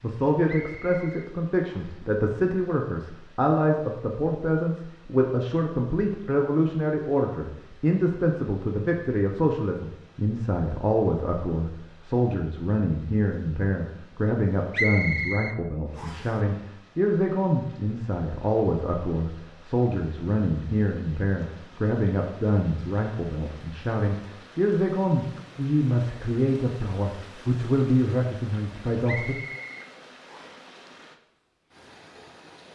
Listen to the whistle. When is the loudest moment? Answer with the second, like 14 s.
15 s.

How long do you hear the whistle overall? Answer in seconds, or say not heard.
5 s.